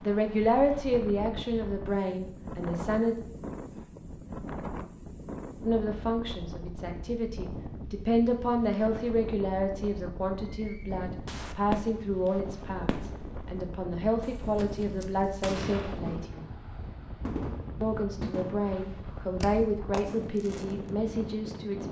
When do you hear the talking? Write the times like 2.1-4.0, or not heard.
0.0-3.1, 5.7-16.5, 17.8-21.8.